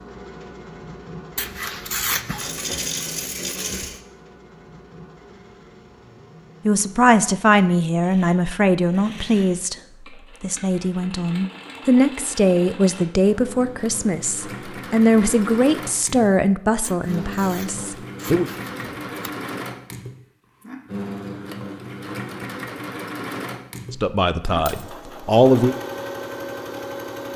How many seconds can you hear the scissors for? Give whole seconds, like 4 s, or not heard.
4 s.